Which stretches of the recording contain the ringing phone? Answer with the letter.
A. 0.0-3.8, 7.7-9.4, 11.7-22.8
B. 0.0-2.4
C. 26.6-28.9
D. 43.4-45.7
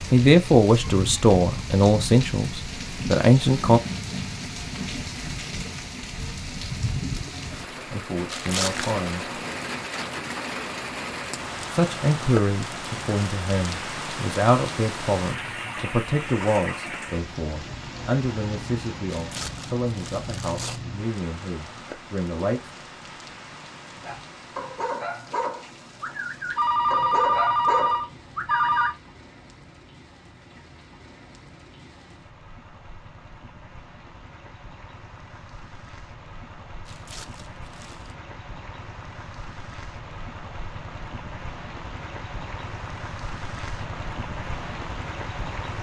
C.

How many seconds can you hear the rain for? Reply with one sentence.
You can hear the rain for 46 seconds altogether.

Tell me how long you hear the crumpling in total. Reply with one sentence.
You can hear the crumpling for 4 seconds altogether.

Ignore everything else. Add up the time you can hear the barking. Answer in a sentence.
You can hear the barking for 5 seconds altogether.